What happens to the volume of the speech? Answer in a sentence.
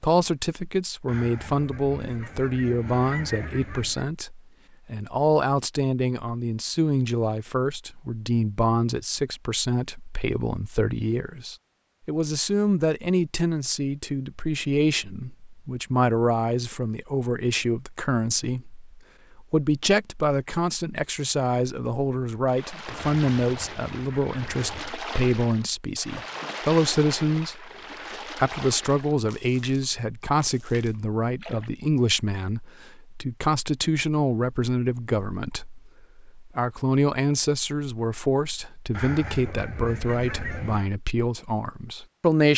The volume of the speech stays about the same.